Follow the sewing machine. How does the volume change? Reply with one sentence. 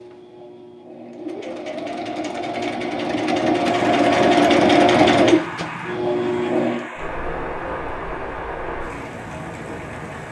The volume of the sewing machine goes up, then down.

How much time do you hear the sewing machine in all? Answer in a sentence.
You can hear the sewing machine for 7 seconds altogether.